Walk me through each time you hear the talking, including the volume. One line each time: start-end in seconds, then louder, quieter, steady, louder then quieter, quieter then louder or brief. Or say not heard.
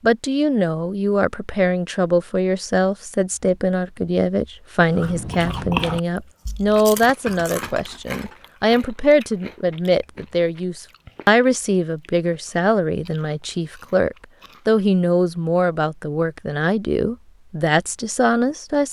0.0-18.8 steady.